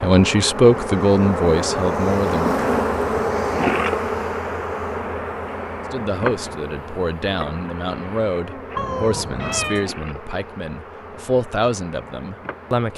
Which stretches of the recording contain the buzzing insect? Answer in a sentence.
The buzzing insect can be heard from 0.0 to 12.9 s.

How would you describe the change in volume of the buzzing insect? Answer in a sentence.
The volume of the buzzing insect goes down.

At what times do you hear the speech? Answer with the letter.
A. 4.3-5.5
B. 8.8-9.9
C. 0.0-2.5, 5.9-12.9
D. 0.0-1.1
C.